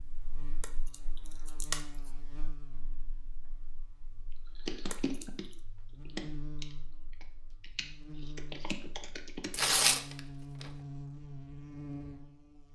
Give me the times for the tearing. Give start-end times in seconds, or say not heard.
0.6-2.1, 4.9-5.5, 9.5-10.8.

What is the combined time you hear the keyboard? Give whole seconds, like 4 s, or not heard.
4 s.